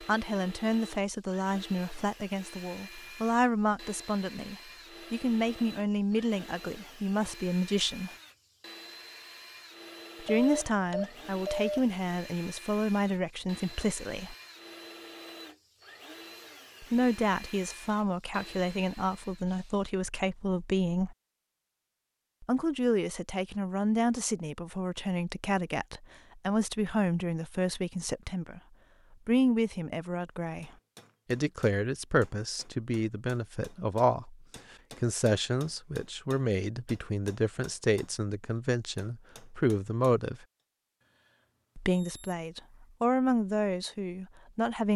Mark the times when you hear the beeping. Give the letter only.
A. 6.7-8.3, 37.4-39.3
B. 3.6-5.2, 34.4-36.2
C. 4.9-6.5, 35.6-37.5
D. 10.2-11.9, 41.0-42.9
D.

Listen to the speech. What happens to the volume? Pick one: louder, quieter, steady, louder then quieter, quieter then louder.
steady.